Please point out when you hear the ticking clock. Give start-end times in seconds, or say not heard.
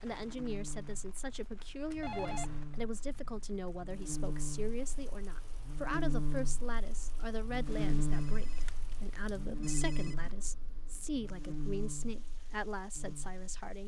not heard.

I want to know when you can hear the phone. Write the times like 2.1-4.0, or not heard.
2.0-2.6, 7.7-10.3.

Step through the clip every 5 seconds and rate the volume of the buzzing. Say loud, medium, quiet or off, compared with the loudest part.
medium, loud, medium.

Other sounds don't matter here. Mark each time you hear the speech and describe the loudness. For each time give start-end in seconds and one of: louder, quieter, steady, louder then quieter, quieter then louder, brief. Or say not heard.
0.0-13.8 steady.